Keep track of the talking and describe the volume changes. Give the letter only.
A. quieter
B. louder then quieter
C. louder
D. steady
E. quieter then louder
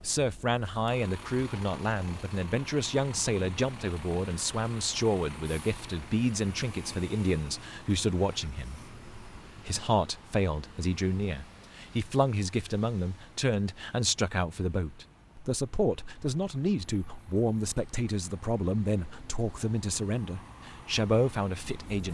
D.